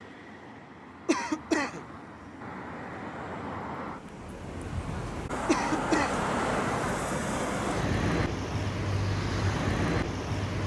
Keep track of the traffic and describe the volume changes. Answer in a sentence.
The volume of the traffic goes up.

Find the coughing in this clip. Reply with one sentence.
The coughing can be heard from 1.1 to 1.9 s and from 5.5 to 6.2 s.